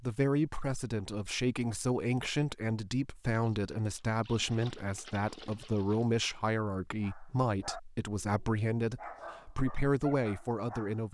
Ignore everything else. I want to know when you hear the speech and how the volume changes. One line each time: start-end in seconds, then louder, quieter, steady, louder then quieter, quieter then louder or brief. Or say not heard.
0.0-11.0 steady.